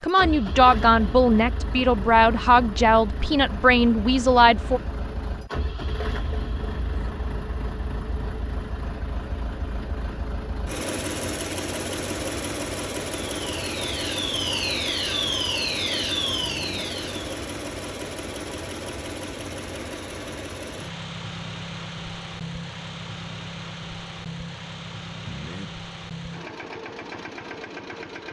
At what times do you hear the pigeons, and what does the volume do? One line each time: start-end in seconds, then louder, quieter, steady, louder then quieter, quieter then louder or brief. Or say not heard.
not heard.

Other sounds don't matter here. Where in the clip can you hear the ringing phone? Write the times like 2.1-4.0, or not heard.
6.7-7.2, 16.4-16.9, 25.2-25.7.